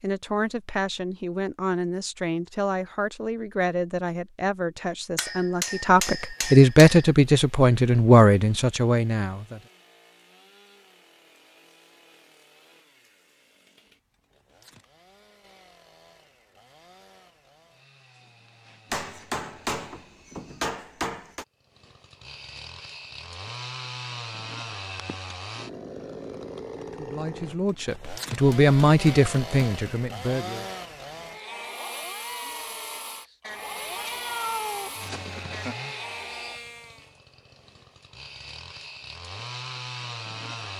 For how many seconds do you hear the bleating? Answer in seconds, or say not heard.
6 s.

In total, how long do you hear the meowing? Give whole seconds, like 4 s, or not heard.
2 s.